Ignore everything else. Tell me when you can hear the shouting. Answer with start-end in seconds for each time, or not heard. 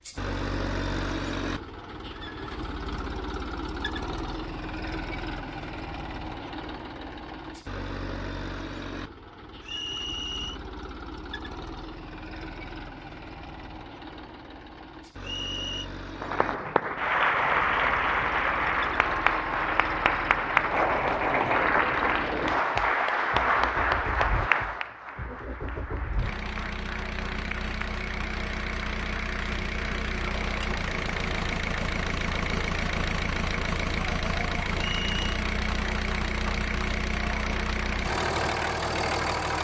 not heard.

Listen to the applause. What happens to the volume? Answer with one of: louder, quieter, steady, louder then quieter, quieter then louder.
quieter.